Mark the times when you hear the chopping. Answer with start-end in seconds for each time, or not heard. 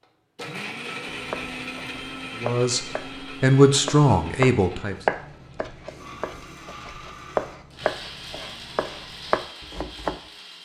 1.1-10.2.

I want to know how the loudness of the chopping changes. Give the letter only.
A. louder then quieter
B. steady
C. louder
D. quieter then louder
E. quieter
C.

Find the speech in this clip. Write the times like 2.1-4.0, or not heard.
2.4-5.0.